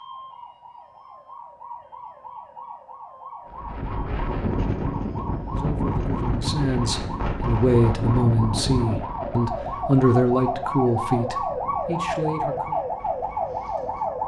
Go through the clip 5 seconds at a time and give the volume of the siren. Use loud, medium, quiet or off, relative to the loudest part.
quiet, medium, loud.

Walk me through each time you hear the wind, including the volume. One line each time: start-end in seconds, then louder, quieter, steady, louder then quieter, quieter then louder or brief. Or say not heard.
3.5-14.2 quieter.